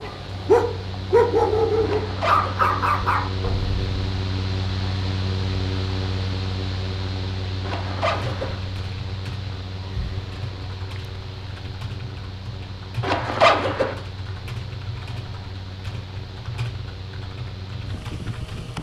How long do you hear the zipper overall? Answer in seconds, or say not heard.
3 s.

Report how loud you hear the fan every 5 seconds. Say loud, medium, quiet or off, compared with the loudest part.
loud, loud, medium, medium.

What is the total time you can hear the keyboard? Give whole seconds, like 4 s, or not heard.
11 s.